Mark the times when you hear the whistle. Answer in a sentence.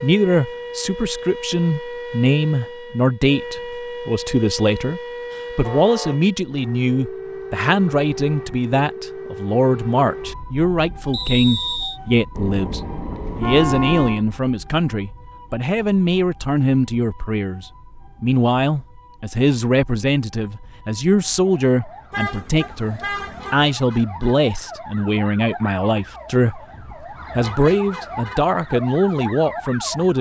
You can hear the whistle from 11.1 to 12.0 s.